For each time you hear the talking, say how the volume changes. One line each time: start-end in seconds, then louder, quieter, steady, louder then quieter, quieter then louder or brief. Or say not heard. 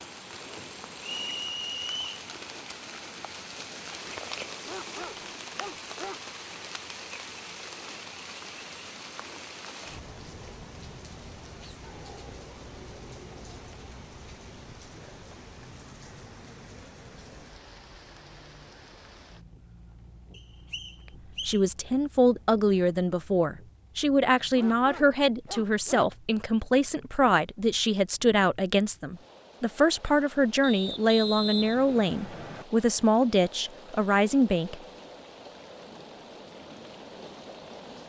21.4-34.8 steady.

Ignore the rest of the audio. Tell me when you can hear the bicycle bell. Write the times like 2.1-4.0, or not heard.
not heard.